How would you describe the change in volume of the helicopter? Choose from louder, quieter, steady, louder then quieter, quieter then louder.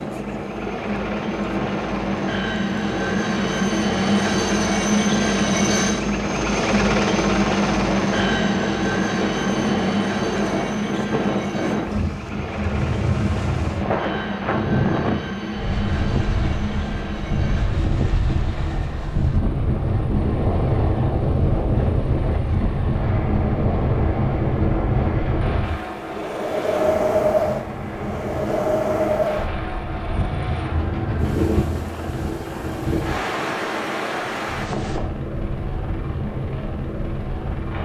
quieter.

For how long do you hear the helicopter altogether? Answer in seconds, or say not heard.
38 s.